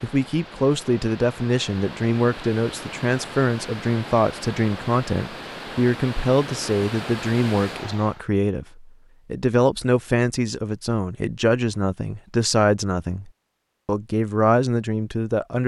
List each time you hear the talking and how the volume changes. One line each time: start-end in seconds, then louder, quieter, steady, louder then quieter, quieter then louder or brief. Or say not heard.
0.0-15.6 steady.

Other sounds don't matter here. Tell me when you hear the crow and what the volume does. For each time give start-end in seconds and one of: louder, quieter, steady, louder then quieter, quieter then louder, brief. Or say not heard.
not heard.